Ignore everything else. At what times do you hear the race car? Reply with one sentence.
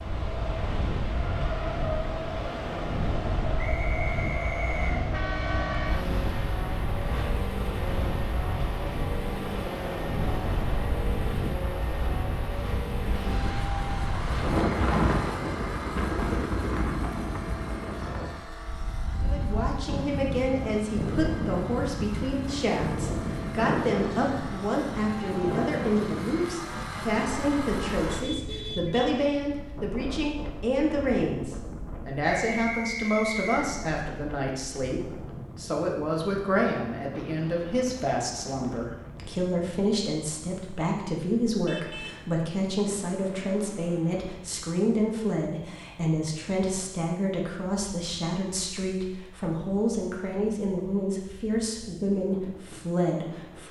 You can hear the race car from 0.1 to 28.3 s.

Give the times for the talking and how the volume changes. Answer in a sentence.
You can hear the talking from 19.2 to 53.6 s, at a steady volume.